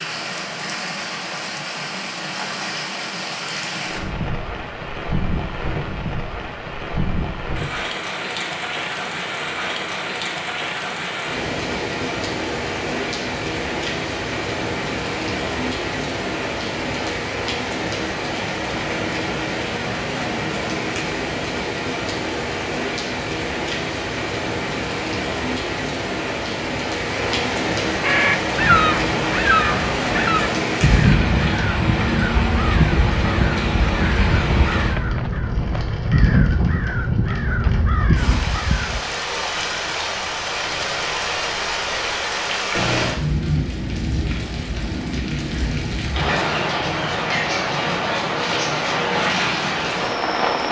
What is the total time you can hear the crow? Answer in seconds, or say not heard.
11 s.